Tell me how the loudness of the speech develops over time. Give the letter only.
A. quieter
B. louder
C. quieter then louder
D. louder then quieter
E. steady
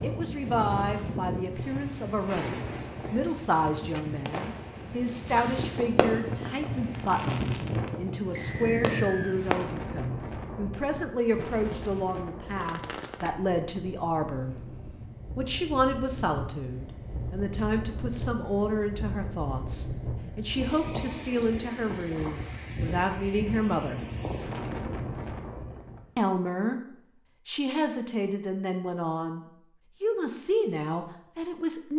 E.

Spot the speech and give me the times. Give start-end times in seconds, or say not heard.
0.0-14.6, 15.3-24.0, 26.1-31.9.